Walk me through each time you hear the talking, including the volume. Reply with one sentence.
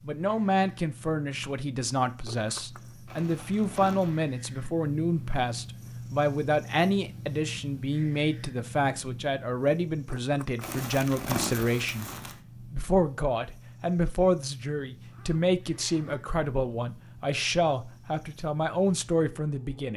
The talking can be heard from 0.0 to 19.9 s, at a steady volume.